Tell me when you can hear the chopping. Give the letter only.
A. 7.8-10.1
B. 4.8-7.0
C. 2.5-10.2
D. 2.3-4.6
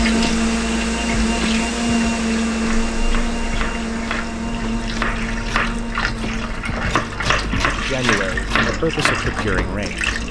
C.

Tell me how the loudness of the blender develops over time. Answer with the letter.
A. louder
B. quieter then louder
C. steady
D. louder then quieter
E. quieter
E.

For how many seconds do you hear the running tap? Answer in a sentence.
The running tap can be heard for 10 seconds in total.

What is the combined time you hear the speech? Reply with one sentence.
The speech can be heard for 2 seconds in total.